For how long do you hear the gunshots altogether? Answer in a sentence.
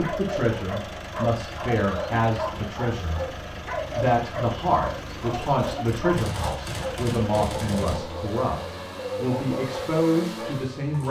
You can hear the gunshots for 2 seconds altogether.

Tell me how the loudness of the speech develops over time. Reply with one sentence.
The loudness of the speech stays about the same.